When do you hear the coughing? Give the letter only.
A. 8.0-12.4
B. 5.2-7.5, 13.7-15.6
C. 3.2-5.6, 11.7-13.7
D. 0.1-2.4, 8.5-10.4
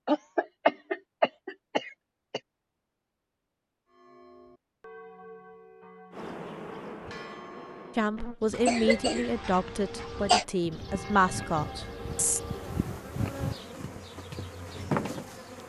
D.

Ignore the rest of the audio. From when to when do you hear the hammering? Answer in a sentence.
You can't hear the hammering here.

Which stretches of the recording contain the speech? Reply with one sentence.
The speech can be heard from 8.0 to 12.4 s.